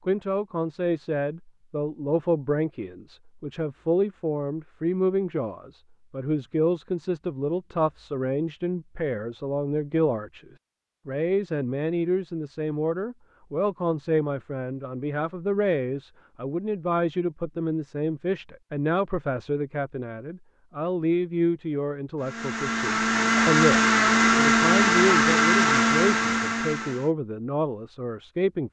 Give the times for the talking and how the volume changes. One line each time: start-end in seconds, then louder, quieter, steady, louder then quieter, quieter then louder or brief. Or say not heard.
0.1-10.4 steady
11.1-28.6 steady.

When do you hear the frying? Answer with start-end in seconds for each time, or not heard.
not heard.